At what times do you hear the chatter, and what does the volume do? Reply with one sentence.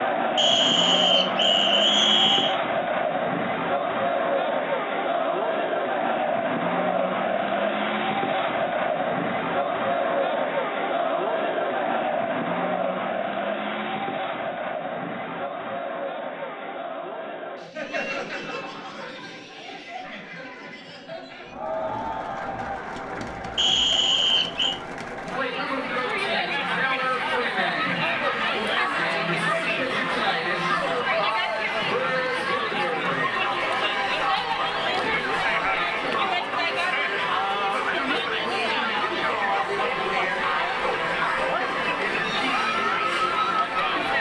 You can hear the chatter from 0.0 to 44.1 s, getting quieter then louder.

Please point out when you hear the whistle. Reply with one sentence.
You can hear the whistle from 0.3 to 2.5 s and from 23.6 to 24.8 s.